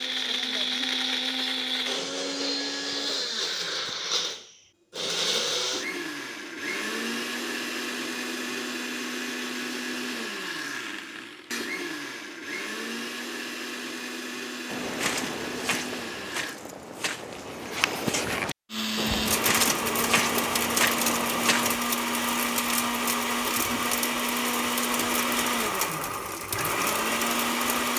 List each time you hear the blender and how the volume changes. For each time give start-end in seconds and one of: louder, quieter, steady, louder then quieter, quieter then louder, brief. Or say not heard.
0.0-16.6 quieter
18.7-27.9 steady.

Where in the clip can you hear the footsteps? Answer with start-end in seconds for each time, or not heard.
14.7-21.8.